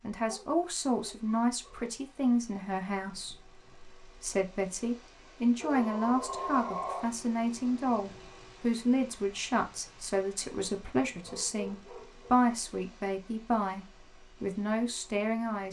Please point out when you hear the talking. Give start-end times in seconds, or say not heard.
0.0-15.6.